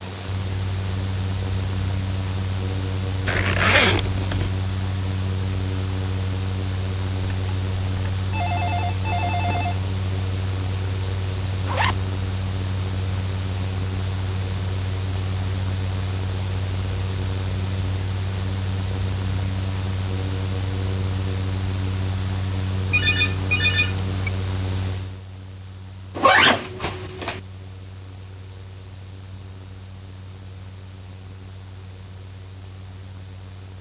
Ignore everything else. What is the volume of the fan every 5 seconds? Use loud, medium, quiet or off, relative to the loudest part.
loud, loud, loud, loud, loud, quiet, quiet.